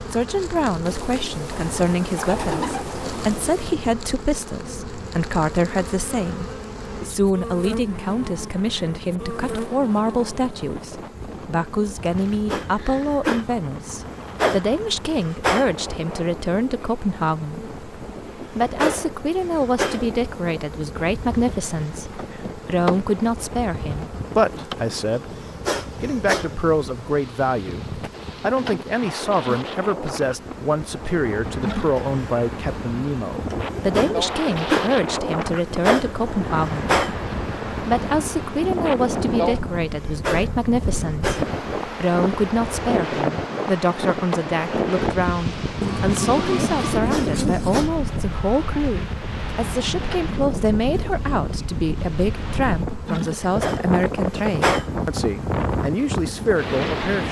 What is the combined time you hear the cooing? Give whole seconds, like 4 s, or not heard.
5 s.